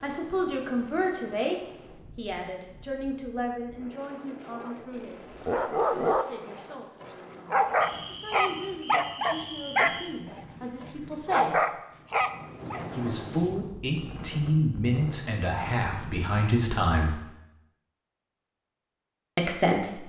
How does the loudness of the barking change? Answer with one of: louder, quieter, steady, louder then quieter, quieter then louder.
steady.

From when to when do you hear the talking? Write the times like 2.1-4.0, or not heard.
0.0-5.2, 6.0-11.7, 12.9-17.2, 19.4-20.0.